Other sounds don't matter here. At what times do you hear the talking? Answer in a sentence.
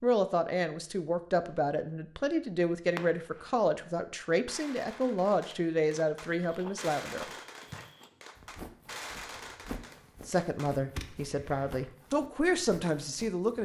The talking can be heard from 0.0 to 7.2 s and from 10.2 to 13.6 s.